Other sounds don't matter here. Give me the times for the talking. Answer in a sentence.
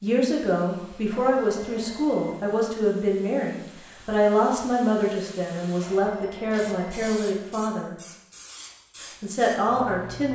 The talking can be heard from 0.0 to 8.0 s and from 9.0 to 10.3 s.